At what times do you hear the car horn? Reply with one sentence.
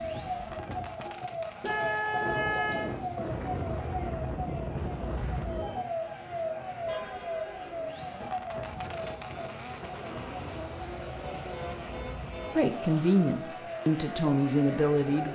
The car horn can be heard from 1.6 to 3.0 s, from 6.8 to 7.9 s and from 11.4 to 12.6 s.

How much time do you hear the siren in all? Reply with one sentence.
You can hear the siren for 15 seconds altogether.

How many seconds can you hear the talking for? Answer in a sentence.
You can hear the talking for 3 seconds altogether.